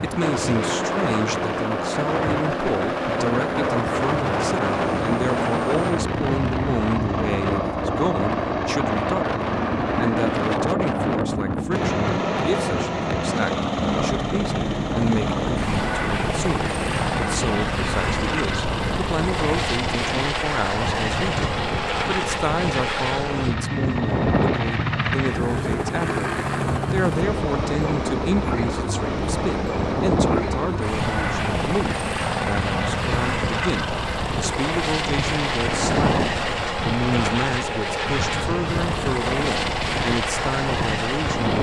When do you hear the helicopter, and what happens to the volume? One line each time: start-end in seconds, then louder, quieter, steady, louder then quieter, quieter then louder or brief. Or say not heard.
0.0-41.5 steady.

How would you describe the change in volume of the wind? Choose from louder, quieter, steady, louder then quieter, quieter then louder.
steady.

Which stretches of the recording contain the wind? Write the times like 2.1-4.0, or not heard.
0.0-41.5.